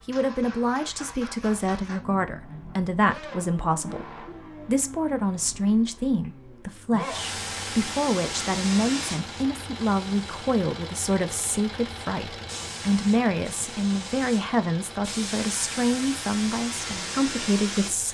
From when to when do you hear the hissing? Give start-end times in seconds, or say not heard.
7.0-10.4, 12.4-17.9.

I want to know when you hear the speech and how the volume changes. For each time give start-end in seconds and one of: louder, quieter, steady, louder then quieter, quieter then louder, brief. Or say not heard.
0.1-18.0 steady.